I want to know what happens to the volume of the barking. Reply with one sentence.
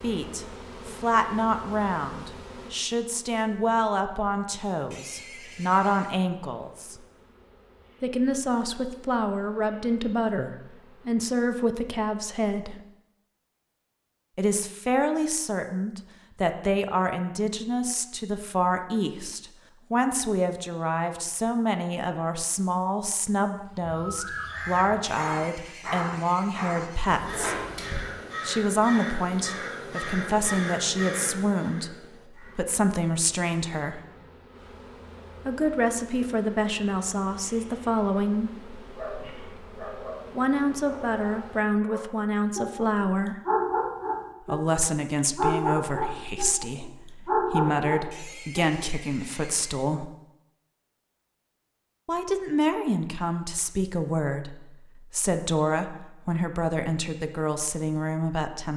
The loudness of the barking goes up.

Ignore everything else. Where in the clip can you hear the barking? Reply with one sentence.
The barking can be heard from 38.8 to 48.6 s.